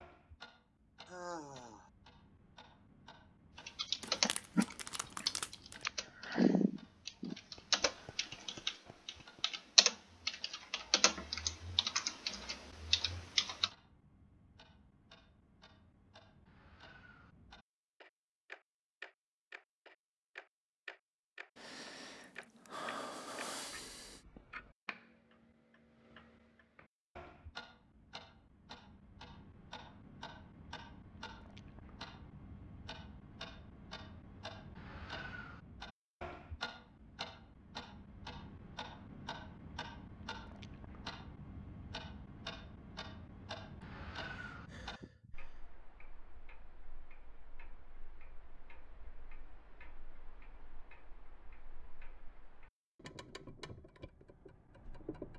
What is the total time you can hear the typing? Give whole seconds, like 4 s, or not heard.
10 s.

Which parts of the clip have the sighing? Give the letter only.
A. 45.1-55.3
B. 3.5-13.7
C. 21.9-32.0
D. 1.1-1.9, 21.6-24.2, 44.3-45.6
D.